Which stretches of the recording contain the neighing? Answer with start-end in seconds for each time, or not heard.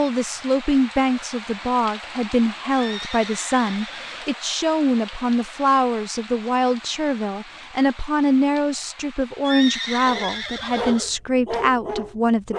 2.8-4.2, 9.4-11.1.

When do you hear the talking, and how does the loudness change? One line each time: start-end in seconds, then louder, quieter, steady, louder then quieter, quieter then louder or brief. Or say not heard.
0.0-12.5 steady.